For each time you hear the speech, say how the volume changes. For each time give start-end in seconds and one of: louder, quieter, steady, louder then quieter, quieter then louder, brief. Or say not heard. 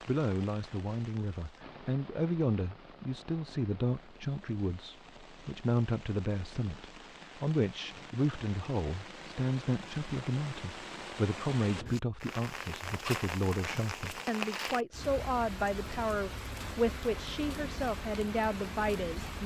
0.1-19.4 steady.